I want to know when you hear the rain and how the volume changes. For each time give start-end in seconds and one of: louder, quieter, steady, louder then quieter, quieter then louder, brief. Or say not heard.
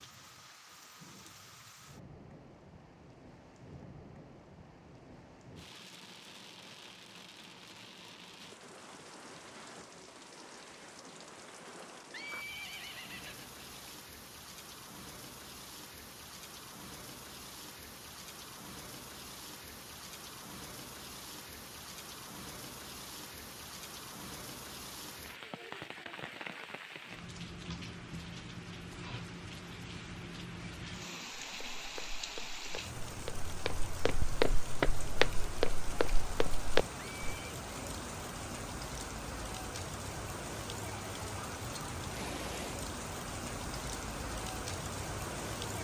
0.0-45.7 louder.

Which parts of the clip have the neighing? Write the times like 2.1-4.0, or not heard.
12.1-13.9, 37.0-37.6.